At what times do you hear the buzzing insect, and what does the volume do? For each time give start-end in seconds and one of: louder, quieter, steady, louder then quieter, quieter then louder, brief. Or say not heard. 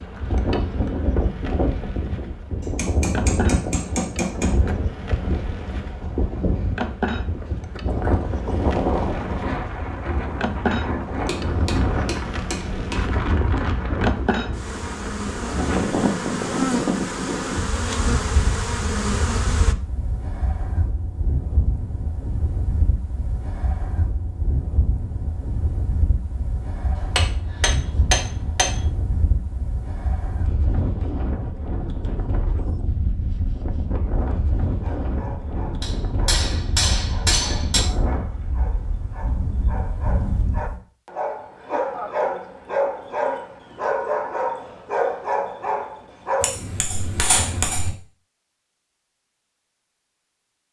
0.0-19.8 louder.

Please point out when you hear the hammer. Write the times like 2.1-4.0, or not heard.
2.6-4.6, 11.2-13.0, 26.9-28.9, 35.8-37.8, 46.4-47.9.